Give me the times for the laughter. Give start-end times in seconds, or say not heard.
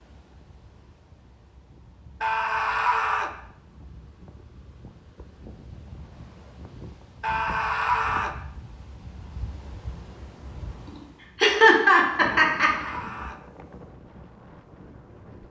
10.9-12.9.